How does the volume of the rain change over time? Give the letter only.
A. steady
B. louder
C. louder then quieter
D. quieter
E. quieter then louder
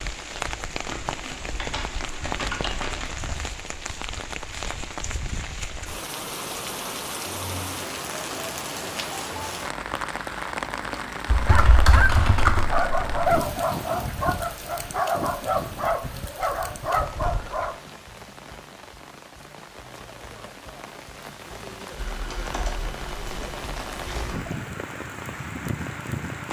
E.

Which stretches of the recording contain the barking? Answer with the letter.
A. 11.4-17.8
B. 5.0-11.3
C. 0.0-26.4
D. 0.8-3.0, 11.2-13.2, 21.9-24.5
A.